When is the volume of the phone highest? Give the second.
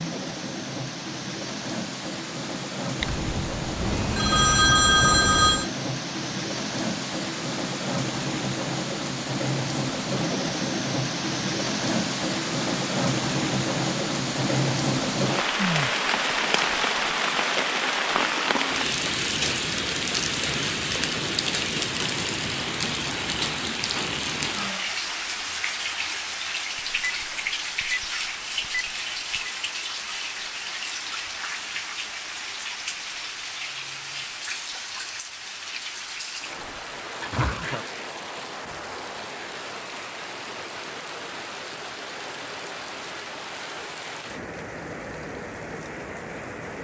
5 s.